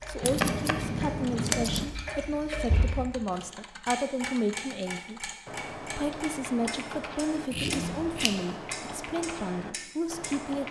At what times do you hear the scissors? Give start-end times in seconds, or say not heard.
0.2-1.9, 7.5-8.3.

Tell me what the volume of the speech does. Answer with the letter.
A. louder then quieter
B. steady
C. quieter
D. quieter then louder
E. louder
B.